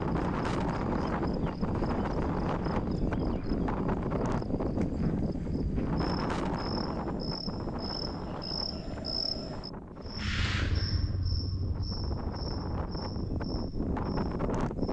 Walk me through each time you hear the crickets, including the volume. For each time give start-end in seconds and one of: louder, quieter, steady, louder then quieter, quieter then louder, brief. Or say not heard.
0.2-14.8 louder then quieter.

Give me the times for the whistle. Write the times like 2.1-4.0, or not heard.
not heard.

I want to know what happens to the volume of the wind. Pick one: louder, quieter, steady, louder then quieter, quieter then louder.
quieter then louder.